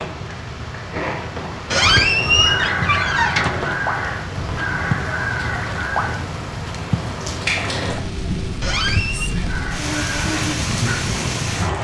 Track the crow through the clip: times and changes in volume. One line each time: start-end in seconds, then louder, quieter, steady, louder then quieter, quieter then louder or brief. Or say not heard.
1.8-6.2 steady
9.4-11.7 brief.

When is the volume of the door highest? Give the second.
2 s.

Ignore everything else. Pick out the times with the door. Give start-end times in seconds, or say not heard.
1.7-3.5, 8.6-9.3.